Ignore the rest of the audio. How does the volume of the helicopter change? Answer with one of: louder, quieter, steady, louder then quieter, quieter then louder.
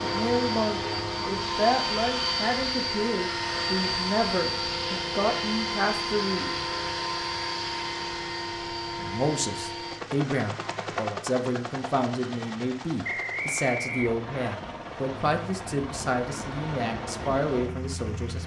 quieter.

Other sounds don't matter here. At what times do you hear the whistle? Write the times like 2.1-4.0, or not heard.
13.0-14.6.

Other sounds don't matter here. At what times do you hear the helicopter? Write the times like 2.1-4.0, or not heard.
0.0-18.4.